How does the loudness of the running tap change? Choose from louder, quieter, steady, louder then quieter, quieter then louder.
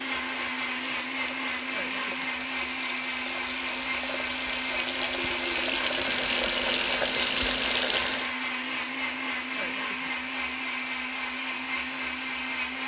louder.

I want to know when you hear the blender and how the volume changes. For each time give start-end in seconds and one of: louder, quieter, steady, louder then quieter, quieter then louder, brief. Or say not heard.
0.0-12.8 steady.